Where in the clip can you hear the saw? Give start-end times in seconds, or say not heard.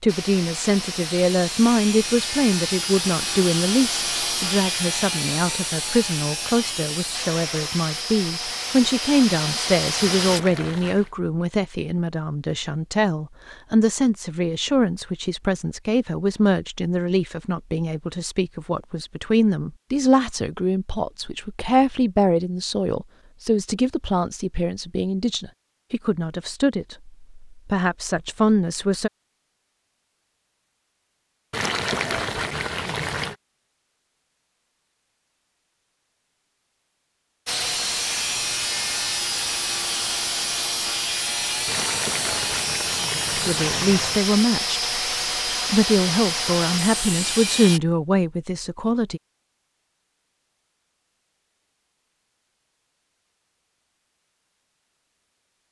0.1-10.4, 37.5-47.8.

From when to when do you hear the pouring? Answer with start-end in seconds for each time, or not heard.
10.0-11.1, 31.5-33.4, 41.6-44.2.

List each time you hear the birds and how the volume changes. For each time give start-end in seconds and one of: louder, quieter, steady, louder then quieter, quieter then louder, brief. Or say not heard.
not heard.